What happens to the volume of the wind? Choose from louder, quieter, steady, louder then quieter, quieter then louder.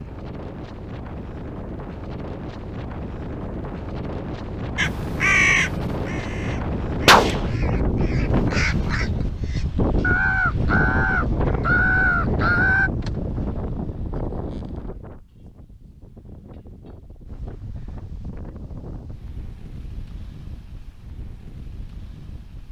louder then quieter.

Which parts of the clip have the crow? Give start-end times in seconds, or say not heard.
4.8-12.9.